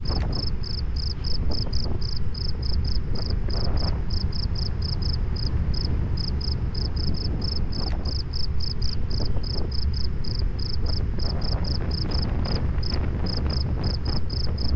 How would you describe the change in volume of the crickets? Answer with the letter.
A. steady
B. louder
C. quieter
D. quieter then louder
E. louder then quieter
A.